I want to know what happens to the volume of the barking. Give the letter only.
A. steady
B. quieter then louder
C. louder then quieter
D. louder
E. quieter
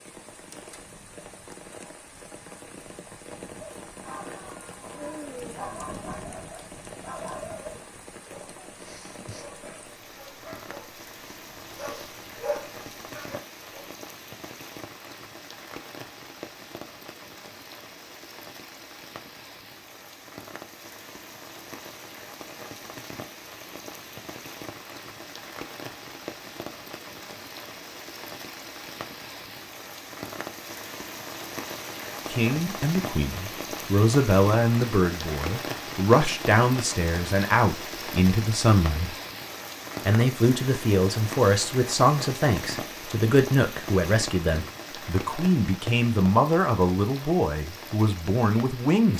B.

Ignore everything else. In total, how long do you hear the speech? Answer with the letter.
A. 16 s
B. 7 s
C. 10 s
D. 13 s
A.